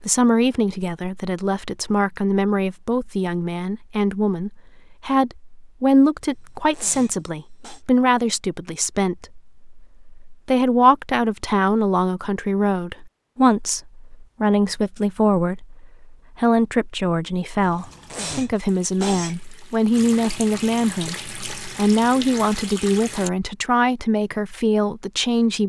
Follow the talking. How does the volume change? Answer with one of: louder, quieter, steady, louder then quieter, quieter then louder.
steady.